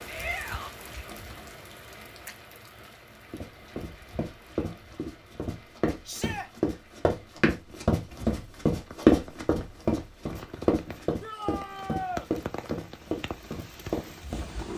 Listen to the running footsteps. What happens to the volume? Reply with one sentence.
The loudness of the running footsteps goes up, then down.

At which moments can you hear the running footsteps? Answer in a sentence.
You can hear the running footsteps from 3.3 to 14.4 s.